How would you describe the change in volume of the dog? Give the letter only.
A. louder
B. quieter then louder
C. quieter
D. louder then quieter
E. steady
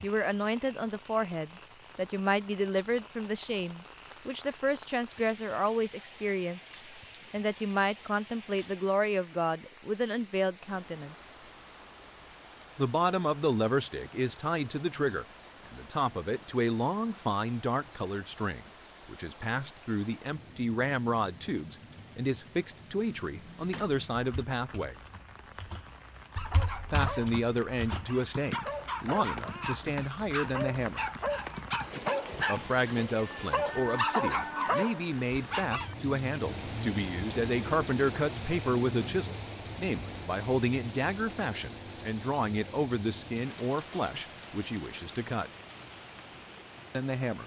A.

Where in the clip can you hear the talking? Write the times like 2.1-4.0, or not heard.
0.0-6.6, 7.3-11.3, 12.8-24.9, 26.9-31.1, 32.5-45.5, 46.9-47.4.